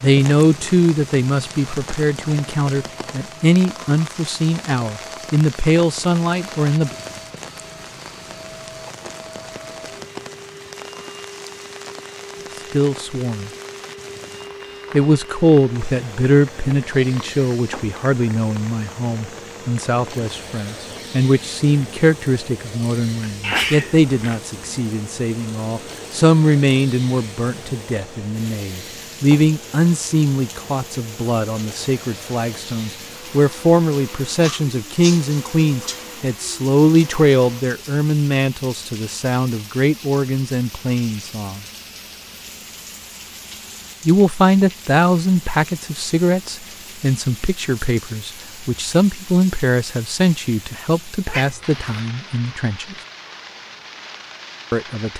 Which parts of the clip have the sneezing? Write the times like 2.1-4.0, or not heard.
23.2-24.4, 34.4-36.0.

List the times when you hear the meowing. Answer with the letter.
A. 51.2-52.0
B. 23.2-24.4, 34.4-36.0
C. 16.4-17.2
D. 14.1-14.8
A.